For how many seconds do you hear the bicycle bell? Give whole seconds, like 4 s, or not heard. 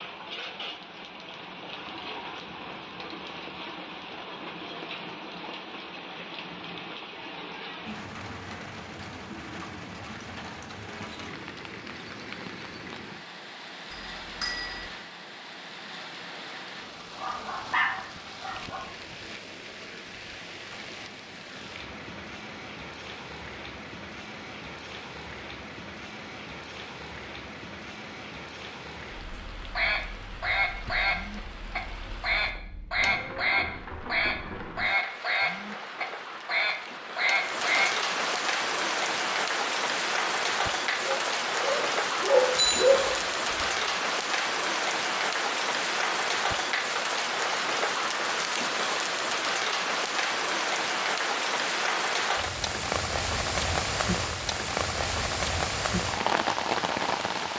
2 s.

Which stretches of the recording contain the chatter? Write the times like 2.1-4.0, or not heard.
not heard.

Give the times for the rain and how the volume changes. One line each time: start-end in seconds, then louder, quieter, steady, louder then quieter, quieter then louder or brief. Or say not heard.
0.0-57.5 louder.